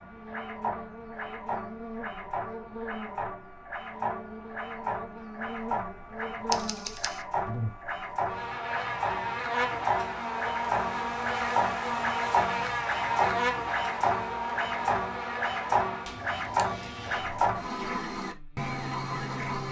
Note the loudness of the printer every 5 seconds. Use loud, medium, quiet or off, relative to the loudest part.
medium, loud, loud, loud.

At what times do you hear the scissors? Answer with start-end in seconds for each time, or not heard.
6.5-7.2, 16.1-17.6.